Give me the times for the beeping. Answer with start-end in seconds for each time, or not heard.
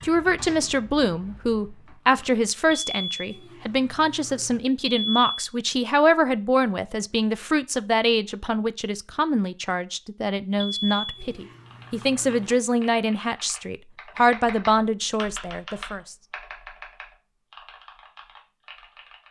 2.7-5.4, 10.6-12.4.